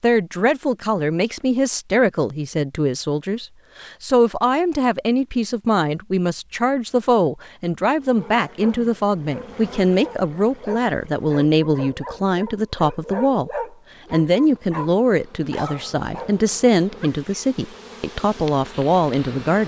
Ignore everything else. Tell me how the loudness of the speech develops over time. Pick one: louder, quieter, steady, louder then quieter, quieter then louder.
steady.